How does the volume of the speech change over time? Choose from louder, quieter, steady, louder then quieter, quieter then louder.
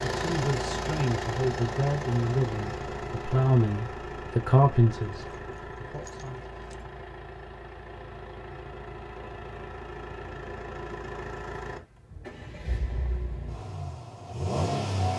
louder then quieter.